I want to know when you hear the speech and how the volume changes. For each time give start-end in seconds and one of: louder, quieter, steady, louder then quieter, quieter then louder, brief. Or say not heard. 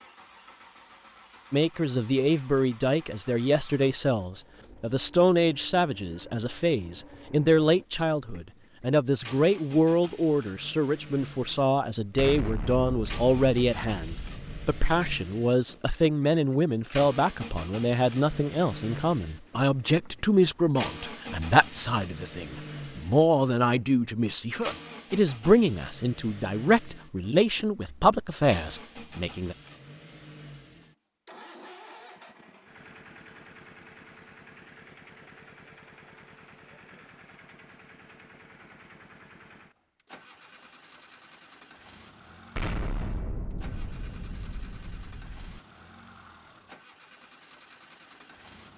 1.5-29.6 steady.